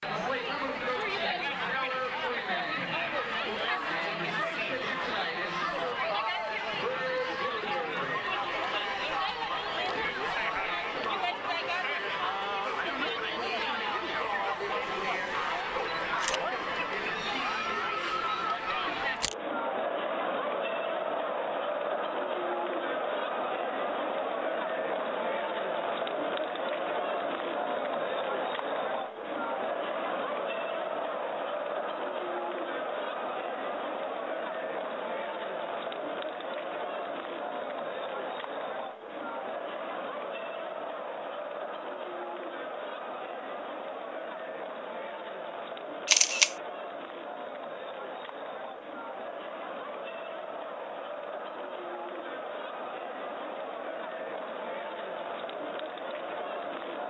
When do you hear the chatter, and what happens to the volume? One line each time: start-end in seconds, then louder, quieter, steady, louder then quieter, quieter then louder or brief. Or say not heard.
0.0-57.0 quieter.